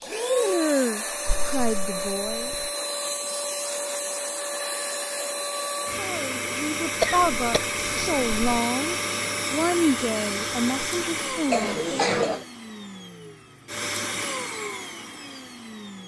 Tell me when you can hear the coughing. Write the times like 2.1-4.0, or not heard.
1.2-2.7, 7.0-8.6, 11.5-12.4.